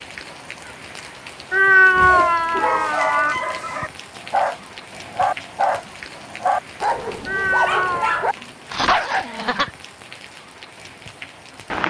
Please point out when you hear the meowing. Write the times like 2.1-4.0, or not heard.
1.5-3.4, 7.2-8.2.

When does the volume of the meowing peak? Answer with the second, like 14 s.
2 s.